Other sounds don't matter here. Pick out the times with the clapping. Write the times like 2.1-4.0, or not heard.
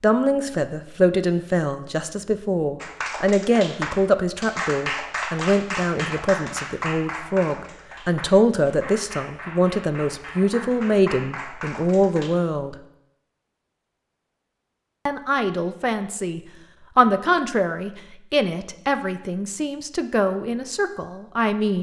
2.8-12.3.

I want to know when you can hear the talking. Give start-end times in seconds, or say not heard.
0.0-12.8, 15.1-21.7.